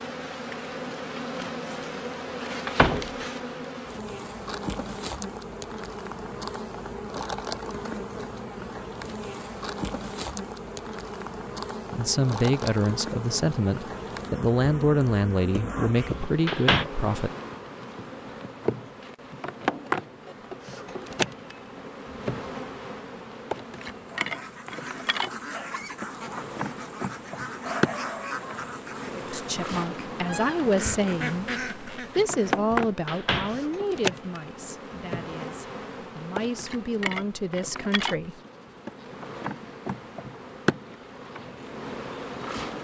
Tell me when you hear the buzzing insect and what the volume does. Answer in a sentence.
You can hear the buzzing insect from 0.0 to 42.7 s, at a steady volume.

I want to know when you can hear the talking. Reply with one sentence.
The talking can be heard from 11.9 to 17.3 s and from 29.1 to 38.4 s.